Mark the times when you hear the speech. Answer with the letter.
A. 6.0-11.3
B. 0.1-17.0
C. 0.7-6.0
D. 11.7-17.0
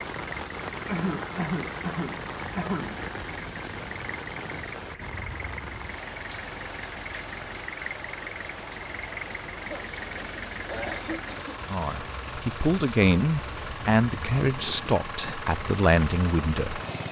D.